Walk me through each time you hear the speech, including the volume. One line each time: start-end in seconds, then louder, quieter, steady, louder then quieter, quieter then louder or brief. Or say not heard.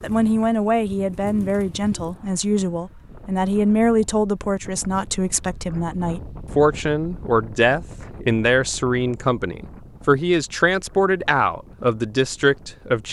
0.0-13.0 steady.